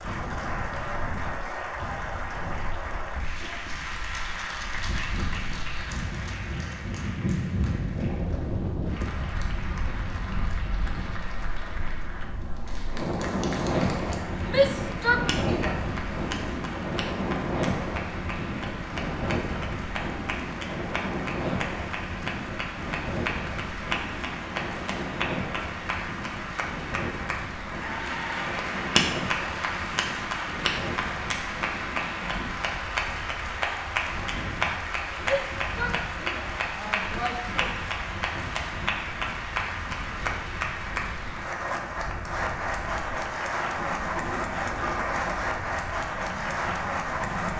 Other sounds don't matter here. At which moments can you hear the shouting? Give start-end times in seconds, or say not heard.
14.4-15.8, 35.2-37.6.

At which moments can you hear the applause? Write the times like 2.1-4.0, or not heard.
0.0-47.5.